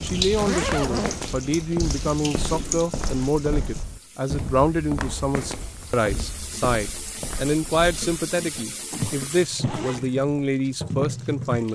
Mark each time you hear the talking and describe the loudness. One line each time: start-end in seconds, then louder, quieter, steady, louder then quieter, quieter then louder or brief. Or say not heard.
0.0-11.7 steady.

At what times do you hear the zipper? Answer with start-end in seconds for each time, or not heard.
0.3-1.1, 8.3-10.1.